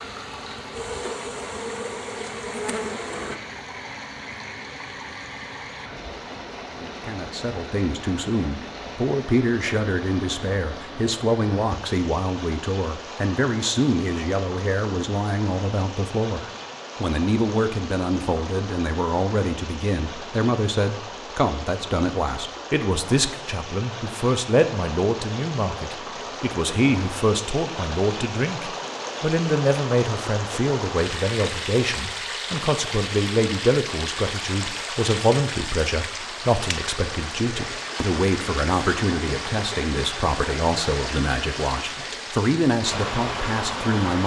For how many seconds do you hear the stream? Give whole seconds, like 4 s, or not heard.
44 s.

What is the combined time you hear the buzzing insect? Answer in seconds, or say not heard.
3 s.